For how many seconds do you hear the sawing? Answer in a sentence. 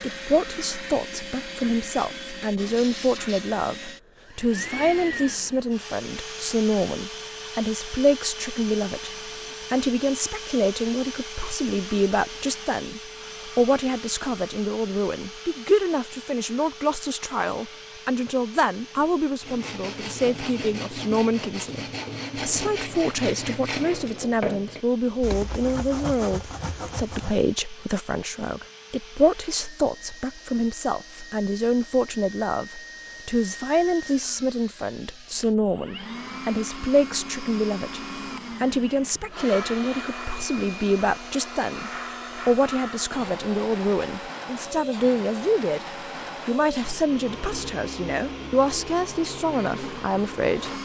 The sawing can be heard for 8 seconds in total.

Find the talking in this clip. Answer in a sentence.
You can hear the talking from 0.0 to 9.1 s, from 9.7 to 45.9 s and from 46.5 to 50.8 s.